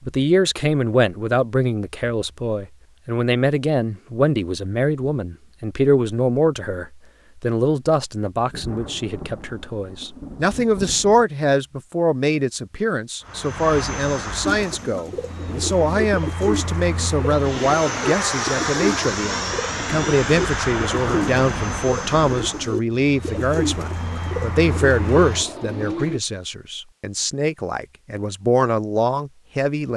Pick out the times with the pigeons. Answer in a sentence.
The pigeons can be heard from 14.4 to 26.2 s.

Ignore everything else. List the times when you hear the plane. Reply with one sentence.
The plane can be heard from 13.2 to 26.1 s.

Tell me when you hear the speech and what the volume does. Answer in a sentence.
The speech can be heard from 0.0 to 29.9 s, at a steady volume.